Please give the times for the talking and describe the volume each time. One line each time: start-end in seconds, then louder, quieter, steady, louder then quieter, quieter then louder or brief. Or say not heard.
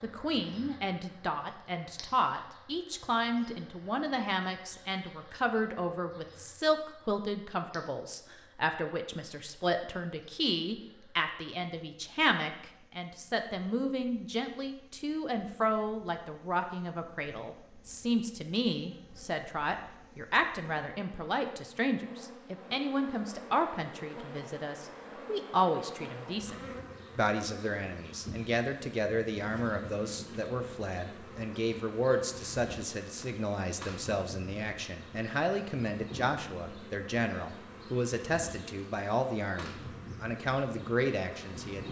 0.0-41.8 steady.